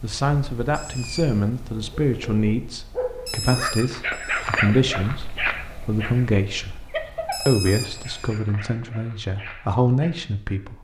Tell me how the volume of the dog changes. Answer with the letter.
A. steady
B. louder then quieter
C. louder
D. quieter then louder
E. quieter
E.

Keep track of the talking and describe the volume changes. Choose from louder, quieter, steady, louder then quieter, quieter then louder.
steady.